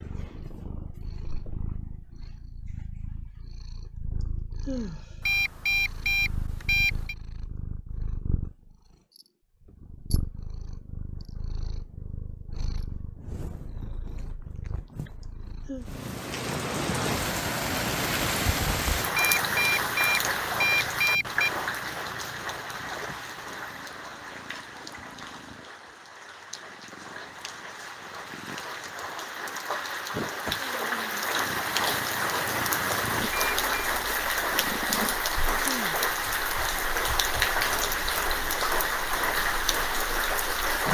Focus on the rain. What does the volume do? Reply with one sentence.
The volume of the rain goes down, then up.